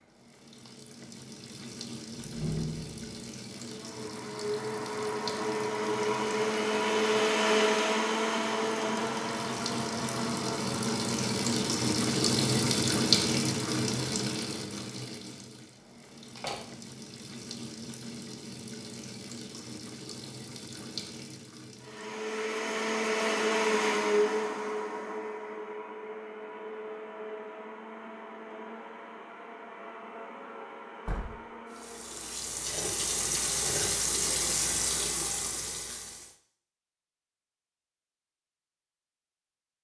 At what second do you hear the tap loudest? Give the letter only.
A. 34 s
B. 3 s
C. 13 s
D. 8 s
C.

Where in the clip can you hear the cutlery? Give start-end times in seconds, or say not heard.
not heard.